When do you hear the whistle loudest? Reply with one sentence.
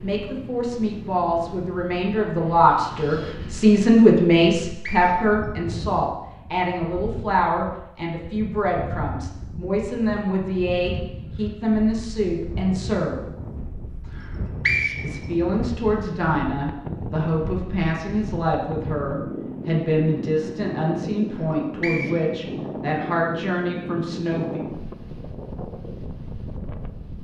The volume of the whistle peaks at 15 seconds.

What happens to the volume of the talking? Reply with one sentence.
The volume of the talking goes down.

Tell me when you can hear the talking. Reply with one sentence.
You can hear the talking from 0.0 to 13.2 s and from 15.0 to 24.6 s.